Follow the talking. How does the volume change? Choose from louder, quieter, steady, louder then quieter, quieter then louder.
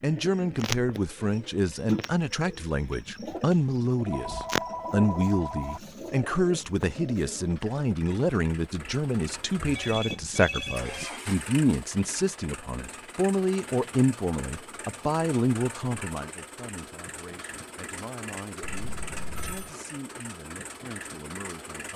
quieter.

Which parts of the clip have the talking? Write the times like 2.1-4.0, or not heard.
0.0-21.9.